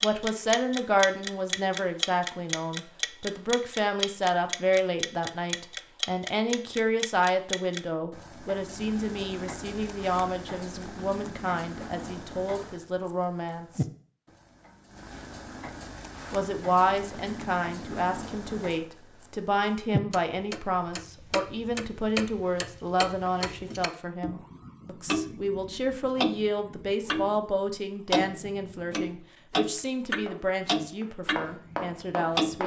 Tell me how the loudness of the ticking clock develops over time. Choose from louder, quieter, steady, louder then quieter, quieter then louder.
quieter then louder.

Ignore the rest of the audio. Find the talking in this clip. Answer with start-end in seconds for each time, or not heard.
0.0-13.8, 16.3-32.6.